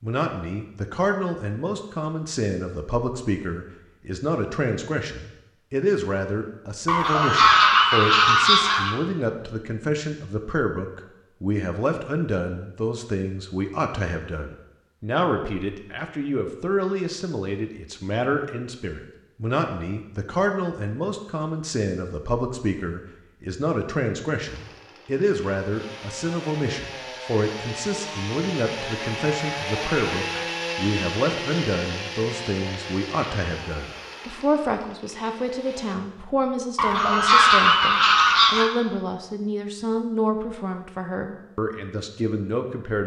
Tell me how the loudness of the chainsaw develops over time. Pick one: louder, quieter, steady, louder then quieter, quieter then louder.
louder then quieter.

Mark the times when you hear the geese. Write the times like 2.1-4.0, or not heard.
6.8-8.9, 36.8-38.7.